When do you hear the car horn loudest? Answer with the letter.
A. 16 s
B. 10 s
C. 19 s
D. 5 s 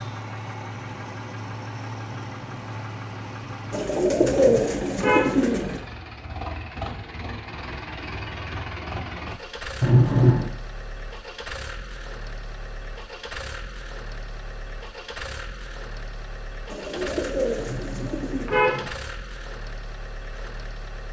B.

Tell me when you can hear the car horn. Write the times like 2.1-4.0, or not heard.
4.1-5.4, 9.8-10.5, 17.6-18.9.